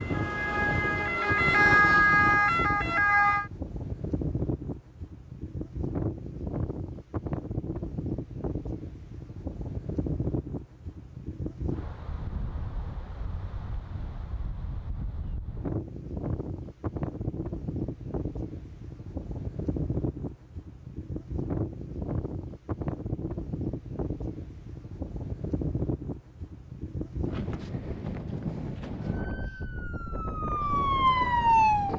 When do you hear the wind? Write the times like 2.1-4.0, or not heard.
0.0-31.9.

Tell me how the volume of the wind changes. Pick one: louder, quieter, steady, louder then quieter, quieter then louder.
steady.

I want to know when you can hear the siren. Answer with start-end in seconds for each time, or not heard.
0.0-3.5, 29.1-31.9.